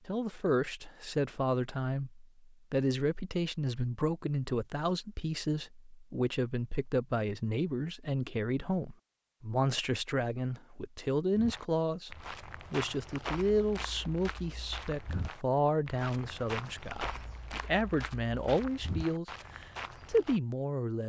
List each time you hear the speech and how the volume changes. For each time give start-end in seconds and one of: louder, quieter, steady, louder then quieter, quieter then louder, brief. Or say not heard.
0.1-21.0 steady.